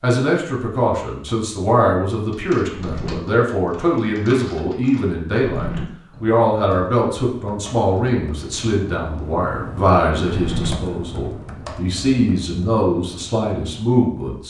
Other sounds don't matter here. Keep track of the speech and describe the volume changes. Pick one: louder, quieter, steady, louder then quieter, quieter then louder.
steady.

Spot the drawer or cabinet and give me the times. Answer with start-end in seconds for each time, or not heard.
2.6-3.2, 5.4-5.8, 10.2-10.8.